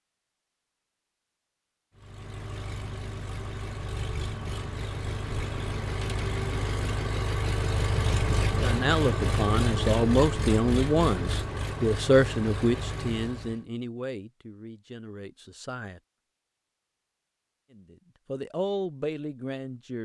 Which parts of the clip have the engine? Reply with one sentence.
You can hear the engine from 1.9 to 13.7 s.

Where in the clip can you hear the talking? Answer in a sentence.
You can hear the talking from 8.6 to 16.0 s and from 17.7 to 20.0 s.